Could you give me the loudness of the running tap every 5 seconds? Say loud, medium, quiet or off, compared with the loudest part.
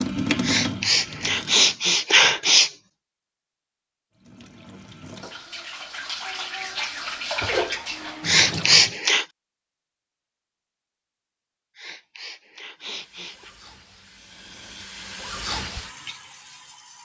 loud, loud, quiet, medium.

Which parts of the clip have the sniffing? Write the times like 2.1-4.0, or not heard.
0.4-2.7, 8.2-9.2, 11.8-13.5.